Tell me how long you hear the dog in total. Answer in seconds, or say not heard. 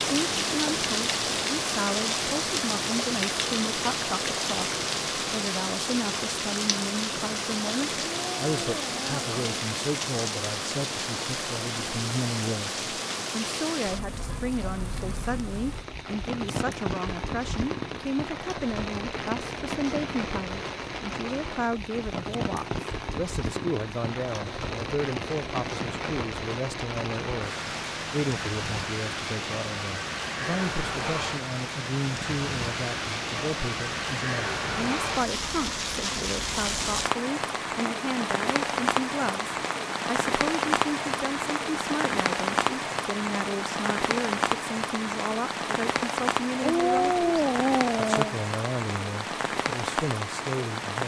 3 s.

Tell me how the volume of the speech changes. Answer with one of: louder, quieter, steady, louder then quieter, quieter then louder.
steady.